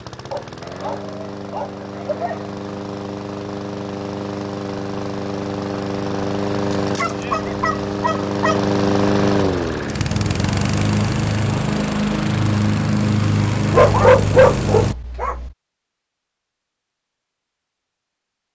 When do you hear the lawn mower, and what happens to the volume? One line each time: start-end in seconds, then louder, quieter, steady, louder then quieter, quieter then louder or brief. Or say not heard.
0.0-14.9 louder.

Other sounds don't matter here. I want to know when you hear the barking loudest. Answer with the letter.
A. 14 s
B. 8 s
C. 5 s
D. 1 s
A.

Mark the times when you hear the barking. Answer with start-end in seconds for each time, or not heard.
0.3-2.5, 6.7-8.6, 13.7-15.5.